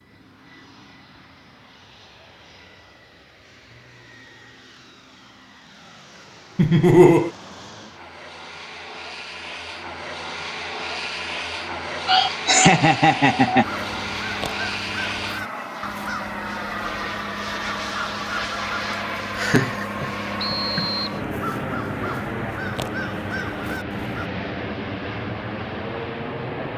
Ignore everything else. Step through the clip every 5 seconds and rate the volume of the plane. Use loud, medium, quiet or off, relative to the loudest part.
quiet, medium, loud, loud, loud, loud.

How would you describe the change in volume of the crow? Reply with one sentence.
The loudness of the crow stays about the same.